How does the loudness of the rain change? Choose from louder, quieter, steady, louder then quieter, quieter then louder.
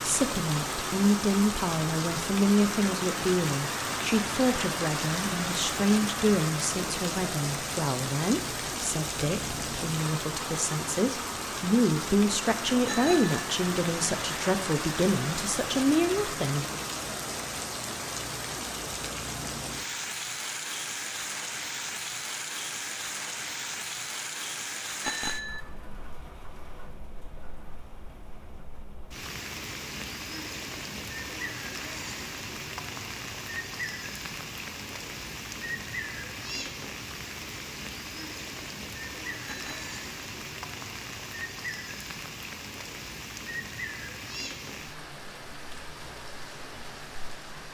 quieter.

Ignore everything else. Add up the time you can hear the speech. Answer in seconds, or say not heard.
17 s.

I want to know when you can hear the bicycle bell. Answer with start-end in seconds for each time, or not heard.
12.8-13.3, 25.0-25.6, 39.5-39.9.